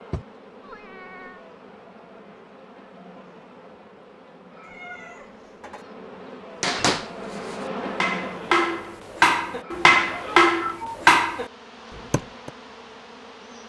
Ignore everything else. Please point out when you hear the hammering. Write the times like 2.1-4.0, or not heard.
6.6-11.4, 12.1-12.5.